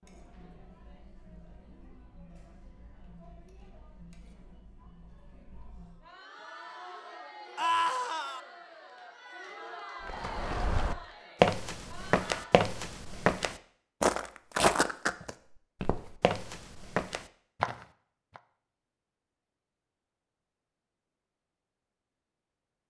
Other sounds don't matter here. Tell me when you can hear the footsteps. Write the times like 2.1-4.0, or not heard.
10.0-18.4.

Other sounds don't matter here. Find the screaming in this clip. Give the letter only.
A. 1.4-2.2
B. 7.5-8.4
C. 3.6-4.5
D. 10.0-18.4
B.